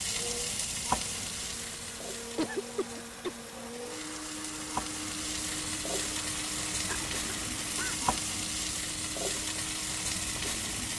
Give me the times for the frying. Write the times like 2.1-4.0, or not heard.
0.0-10.9.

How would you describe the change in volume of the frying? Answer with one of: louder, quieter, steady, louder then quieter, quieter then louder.
quieter then louder.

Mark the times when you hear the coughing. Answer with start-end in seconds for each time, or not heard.
2.4-3.4, 6.8-8.1.